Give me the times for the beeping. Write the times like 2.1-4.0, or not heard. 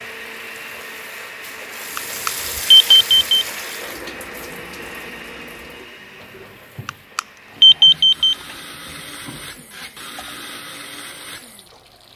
1.9-3.5, 6.8-8.3.